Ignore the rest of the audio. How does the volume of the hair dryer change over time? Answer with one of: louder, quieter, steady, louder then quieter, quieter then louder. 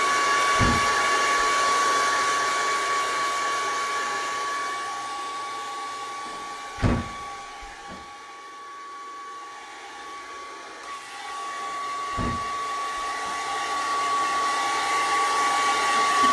quieter then louder.